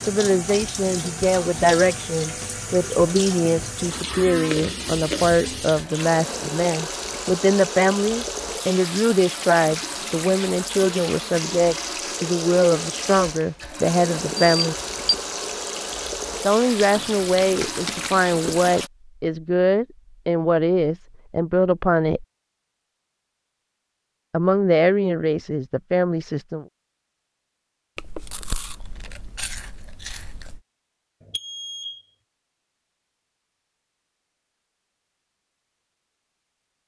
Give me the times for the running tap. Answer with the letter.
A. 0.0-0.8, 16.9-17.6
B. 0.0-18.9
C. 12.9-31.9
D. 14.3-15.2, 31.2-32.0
B.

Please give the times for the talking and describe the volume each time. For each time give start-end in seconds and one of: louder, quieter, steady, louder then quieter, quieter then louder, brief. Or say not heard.
0.0-14.8 steady
16.4-22.2 steady
24.3-26.6 brief.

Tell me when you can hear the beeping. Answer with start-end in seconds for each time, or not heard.
14.3-15.2, 31.2-32.0.